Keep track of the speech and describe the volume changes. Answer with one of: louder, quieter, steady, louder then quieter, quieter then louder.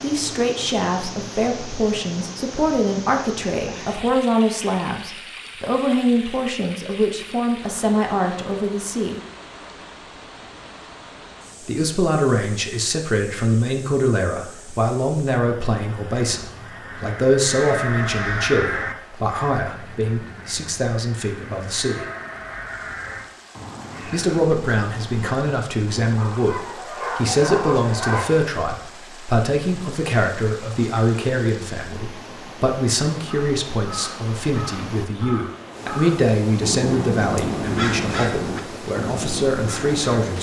steady.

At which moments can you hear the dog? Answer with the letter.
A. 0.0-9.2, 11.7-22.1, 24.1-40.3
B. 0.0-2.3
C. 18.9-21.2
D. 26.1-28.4
D.